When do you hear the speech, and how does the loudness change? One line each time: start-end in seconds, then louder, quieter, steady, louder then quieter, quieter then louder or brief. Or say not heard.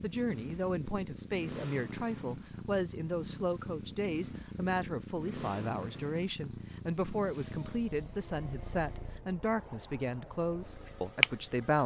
0.0-11.8 steady.